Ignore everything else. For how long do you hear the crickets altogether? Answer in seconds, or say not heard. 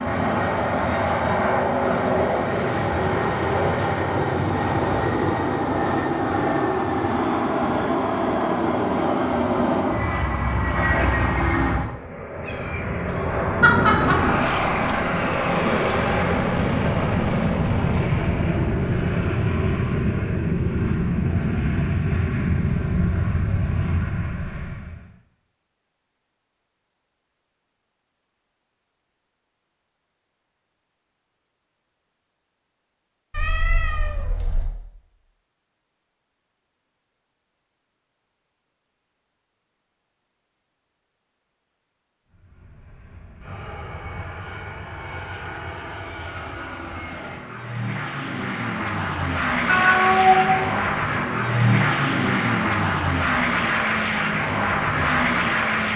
not heard.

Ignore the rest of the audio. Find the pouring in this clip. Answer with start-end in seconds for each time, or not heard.
13.6-16.1.